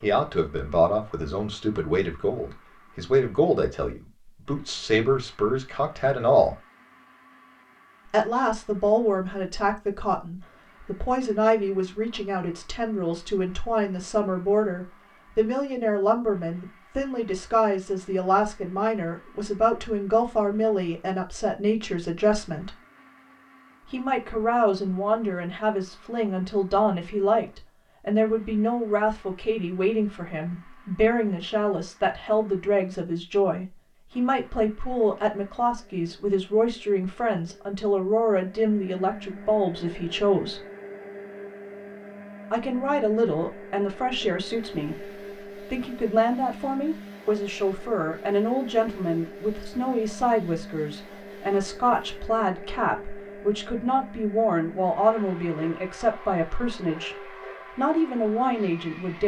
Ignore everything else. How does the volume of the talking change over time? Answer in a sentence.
The loudness of the talking stays about the same.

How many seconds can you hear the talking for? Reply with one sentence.
You can hear the talking for 55 seconds altogether.